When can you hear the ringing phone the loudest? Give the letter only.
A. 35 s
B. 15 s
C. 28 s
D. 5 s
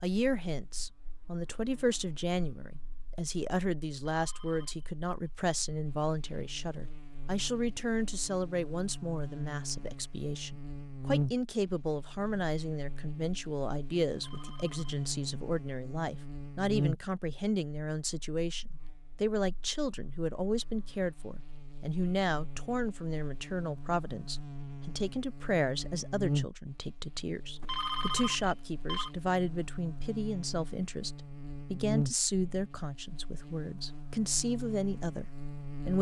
C.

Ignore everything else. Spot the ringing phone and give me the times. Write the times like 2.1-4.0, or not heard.
4.1-5.3, 14.2-15.1, 27.6-29.1.